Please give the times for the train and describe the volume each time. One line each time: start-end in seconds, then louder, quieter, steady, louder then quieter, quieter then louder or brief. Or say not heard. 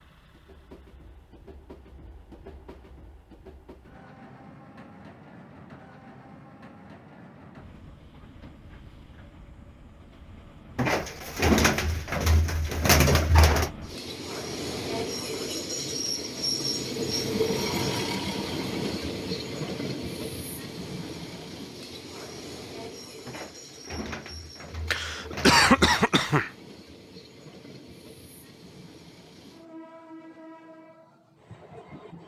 0.0-32.2 louder then quieter.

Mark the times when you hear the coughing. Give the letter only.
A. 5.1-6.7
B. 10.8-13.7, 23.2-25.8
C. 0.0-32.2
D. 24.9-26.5
D.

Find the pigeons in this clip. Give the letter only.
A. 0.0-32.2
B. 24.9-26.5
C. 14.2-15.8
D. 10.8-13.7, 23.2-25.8
D.